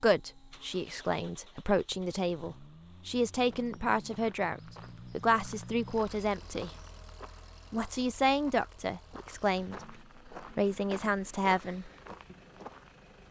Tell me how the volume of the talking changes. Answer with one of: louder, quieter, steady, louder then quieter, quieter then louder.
steady.